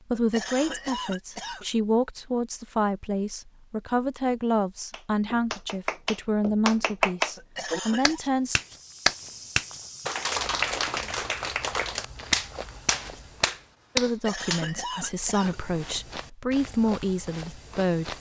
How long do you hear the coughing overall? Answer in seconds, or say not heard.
4 s.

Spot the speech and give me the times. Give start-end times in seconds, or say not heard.
0.1-8.6, 13.9-18.1.